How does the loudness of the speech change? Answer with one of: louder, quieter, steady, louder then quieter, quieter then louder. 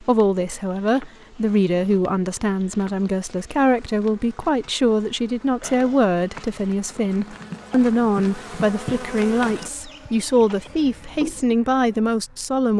steady.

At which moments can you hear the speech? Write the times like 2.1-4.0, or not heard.
0.0-12.7.